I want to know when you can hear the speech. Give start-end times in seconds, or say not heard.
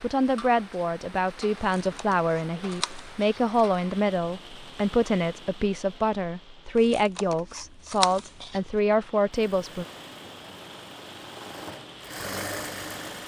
0.0-9.8.